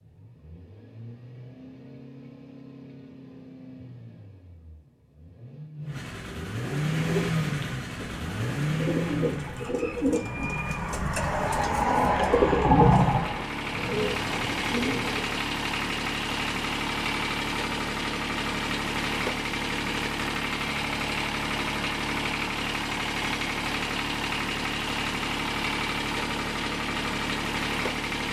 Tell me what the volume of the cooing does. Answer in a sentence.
The volume of the cooing goes up, then down.